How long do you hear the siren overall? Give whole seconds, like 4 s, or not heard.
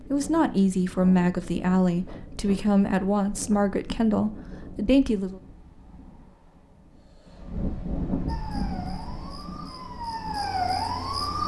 3 s.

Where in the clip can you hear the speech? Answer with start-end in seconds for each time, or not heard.
0.0-5.4.